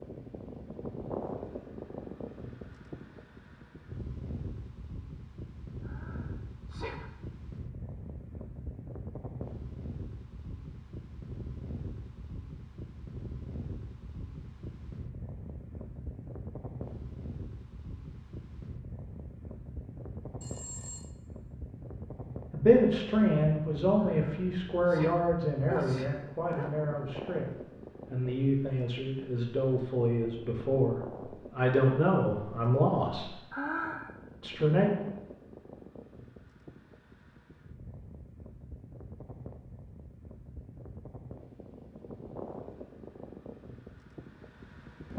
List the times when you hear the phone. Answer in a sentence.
You can hear the phone from 20.4 to 21.1 s.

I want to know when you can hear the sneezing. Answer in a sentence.
You can hear the sneezing from 5.8 to 7.1 s, from 24.1 to 26.8 s and from 33.5 to 34.1 s.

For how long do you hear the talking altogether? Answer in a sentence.
The talking can be heard for 11 seconds in total.